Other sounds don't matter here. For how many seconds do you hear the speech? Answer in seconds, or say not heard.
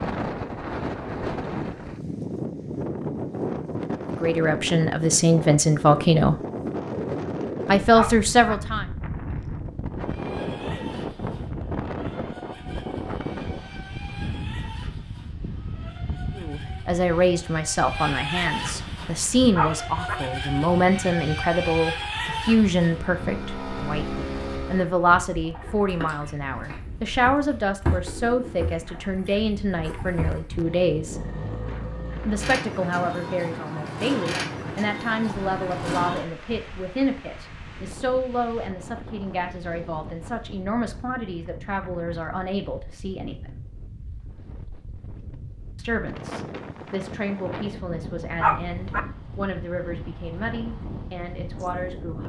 36 s.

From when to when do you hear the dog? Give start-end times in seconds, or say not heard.
7.9-8.6, 19.5-20.1, 48.4-49.0.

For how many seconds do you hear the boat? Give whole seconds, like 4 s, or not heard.
27 s.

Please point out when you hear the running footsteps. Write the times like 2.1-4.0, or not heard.
not heard.